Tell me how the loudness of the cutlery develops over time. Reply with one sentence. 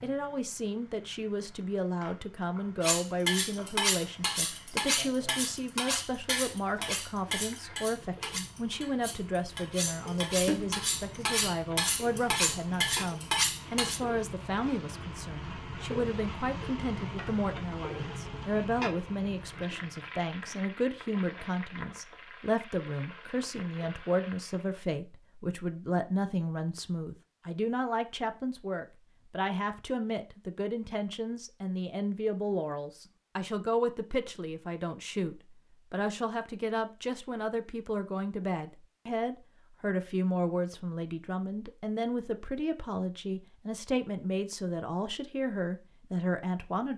The loudness of the cutlery goes down, then up.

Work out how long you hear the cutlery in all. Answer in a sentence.
The cutlery can be heard for 11 seconds in total.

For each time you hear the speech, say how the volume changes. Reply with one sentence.
The speech can be heard from 0.0 to 46.9 s, at a steady volume.